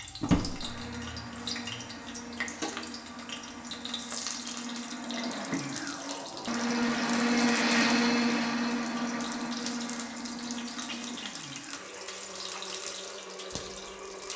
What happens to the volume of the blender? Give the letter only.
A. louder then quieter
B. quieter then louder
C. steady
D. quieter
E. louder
A.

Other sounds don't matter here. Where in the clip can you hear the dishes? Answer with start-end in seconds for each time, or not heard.
not heard.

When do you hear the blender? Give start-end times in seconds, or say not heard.
0.0-14.3.